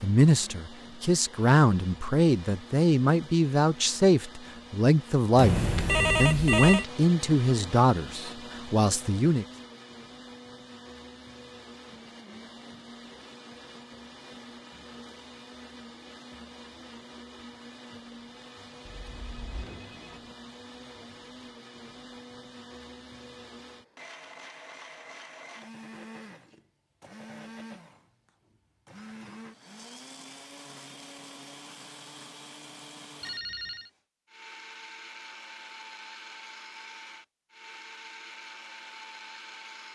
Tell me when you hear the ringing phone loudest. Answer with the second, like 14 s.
6 s.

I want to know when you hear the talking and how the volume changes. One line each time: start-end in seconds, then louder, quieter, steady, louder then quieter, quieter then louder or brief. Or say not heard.
0.0-9.4 steady.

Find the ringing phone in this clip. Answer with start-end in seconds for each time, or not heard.
5.3-6.8, 18.9-20.4, 33.2-33.9.